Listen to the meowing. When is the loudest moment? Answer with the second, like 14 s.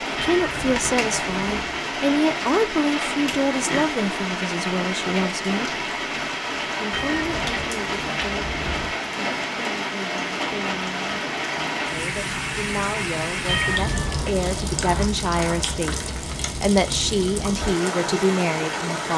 14 s.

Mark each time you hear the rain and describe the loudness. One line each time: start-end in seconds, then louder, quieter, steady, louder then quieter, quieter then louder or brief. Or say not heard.
0.0-19.1 steady.